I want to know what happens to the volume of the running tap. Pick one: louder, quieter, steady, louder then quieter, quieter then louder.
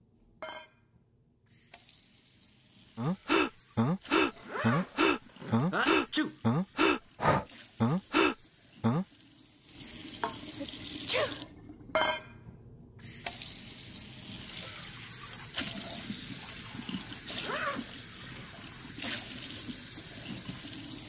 louder.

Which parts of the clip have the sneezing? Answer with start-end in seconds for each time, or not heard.
5.7-6.3, 10.6-11.4.